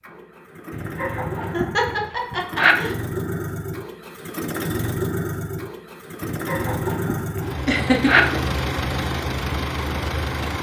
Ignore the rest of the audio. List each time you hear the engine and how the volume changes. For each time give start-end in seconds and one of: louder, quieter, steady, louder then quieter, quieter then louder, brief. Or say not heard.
0.0-10.5 louder.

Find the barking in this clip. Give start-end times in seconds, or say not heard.
0.7-2.8, 6.2-8.2.